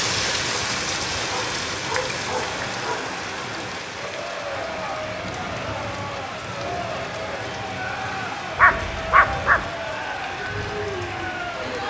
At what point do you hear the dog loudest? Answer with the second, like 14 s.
9 s.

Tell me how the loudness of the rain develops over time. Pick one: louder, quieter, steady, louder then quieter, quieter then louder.
quieter.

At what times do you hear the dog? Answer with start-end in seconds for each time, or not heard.
1.1-3.0, 8.6-9.7.